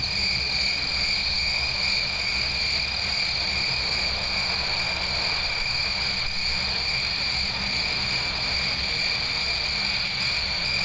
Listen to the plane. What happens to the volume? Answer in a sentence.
The volume of the plane stays about the same.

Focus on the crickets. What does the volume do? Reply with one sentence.
The volume of the crickets stays about the same.